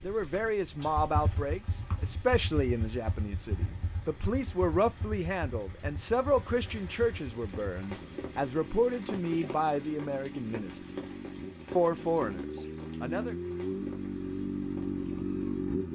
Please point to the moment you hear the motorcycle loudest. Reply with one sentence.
The volume of the motorcycle peaks at 15 seconds.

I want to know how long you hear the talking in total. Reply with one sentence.
The talking can be heard for 12 seconds in total.